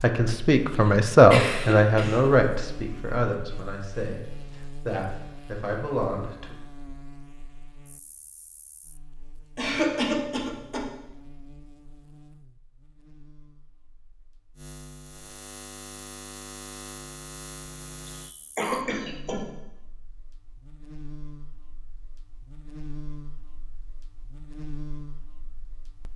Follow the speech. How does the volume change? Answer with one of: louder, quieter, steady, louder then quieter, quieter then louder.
quieter.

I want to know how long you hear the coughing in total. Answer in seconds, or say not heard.
4 s.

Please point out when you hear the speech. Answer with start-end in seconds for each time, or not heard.
0.0-6.5.